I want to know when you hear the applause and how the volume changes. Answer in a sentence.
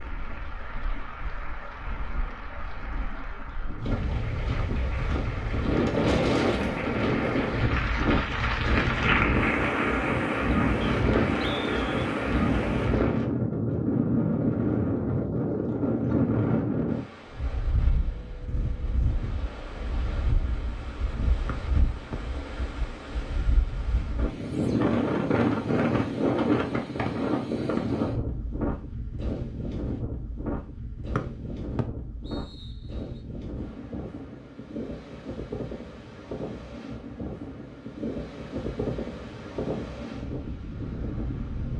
The applause can be heard from 0.0 to 13.3 s, getting louder then quieter.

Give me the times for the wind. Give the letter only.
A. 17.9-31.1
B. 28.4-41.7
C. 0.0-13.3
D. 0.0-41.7
D.